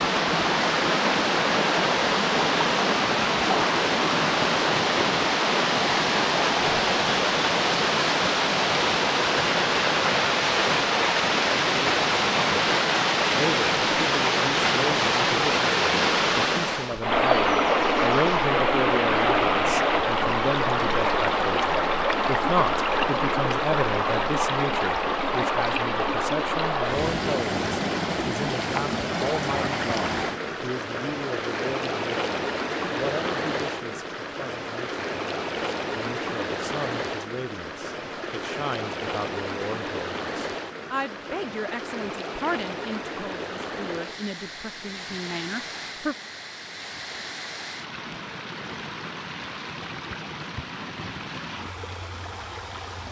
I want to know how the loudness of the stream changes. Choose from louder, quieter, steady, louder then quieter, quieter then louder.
quieter.